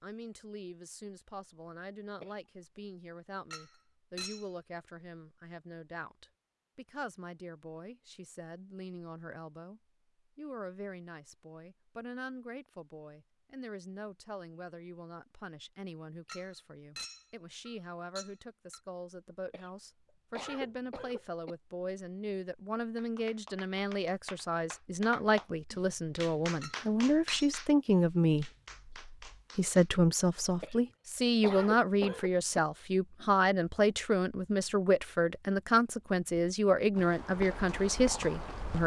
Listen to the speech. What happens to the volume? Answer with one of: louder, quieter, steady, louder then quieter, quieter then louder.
louder.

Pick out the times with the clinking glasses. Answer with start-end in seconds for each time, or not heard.
3.5-4.5, 16.2-18.8, 26.6-27.5.